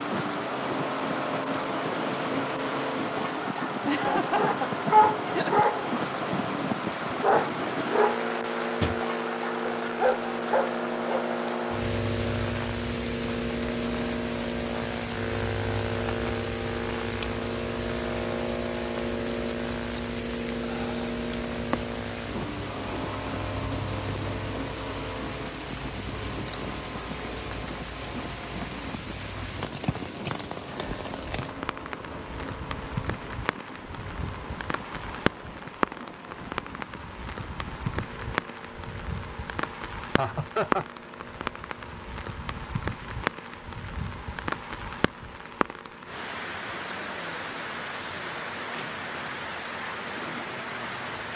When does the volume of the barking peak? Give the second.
5 s.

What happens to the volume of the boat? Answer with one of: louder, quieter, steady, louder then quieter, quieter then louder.
quieter.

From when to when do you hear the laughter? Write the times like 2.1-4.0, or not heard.
3.9-5.5, 40.1-40.9.